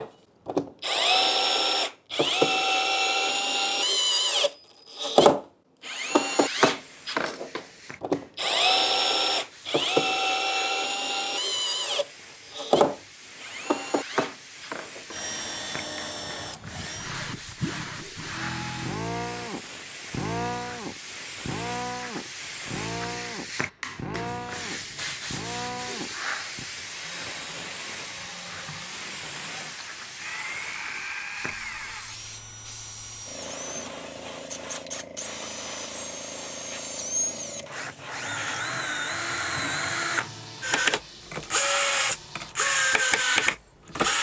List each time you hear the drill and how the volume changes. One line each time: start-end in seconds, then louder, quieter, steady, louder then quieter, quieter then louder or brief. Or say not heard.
0.0-44.1 quieter then louder.